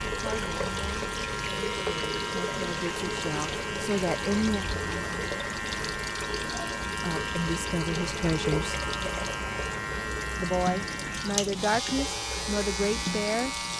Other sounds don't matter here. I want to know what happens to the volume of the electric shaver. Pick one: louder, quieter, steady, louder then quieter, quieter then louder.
steady.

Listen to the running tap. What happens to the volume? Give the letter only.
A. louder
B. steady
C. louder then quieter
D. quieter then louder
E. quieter
B.